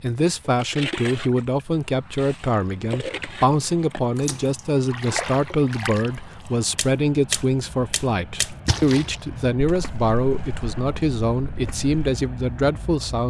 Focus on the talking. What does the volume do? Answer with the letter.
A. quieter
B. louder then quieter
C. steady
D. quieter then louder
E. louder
C.